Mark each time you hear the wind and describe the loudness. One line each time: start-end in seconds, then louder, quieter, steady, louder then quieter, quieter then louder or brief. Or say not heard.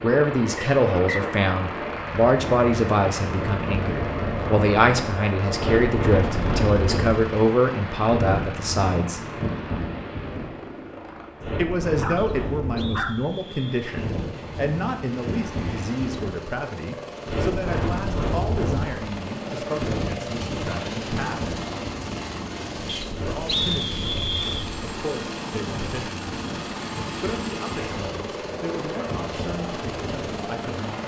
0.0-31.0 quieter.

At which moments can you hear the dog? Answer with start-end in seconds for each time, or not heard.
11.4-13.2.